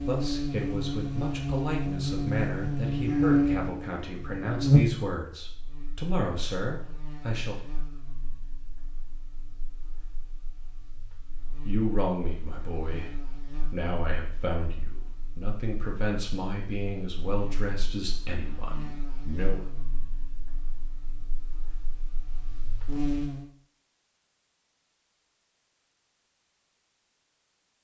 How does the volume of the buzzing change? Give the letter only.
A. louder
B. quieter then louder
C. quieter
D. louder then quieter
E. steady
B.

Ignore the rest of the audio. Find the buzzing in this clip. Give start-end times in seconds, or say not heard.
0.0-23.4.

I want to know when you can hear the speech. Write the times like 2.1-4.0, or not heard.
0.0-7.6, 11.7-19.6.